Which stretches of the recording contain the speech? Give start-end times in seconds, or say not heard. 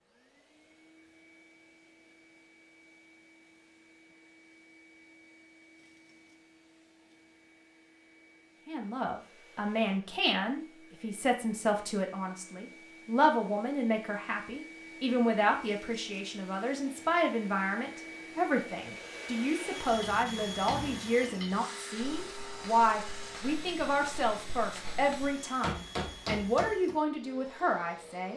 8.7-28.3.